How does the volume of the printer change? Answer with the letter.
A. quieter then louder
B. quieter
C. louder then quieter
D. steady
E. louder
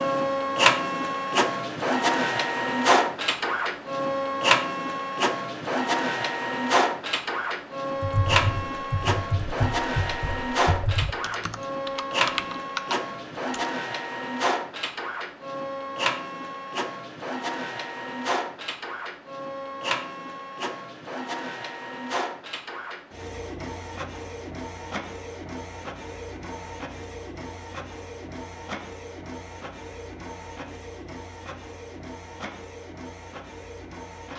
B.